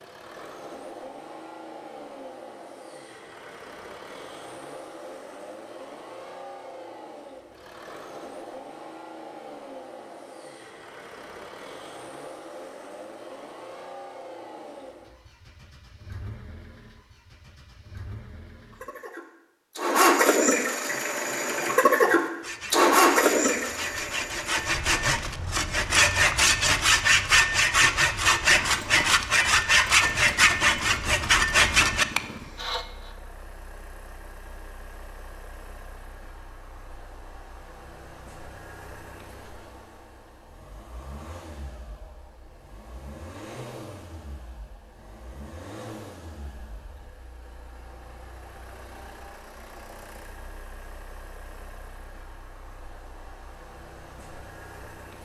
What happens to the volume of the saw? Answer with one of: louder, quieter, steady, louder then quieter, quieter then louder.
louder.